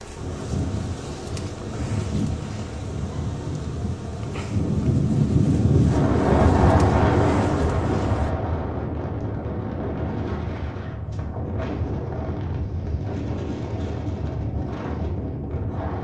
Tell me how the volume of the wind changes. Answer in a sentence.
The loudness of the wind goes up, then down.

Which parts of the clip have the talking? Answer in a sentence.
The talking can't be heard in this clip.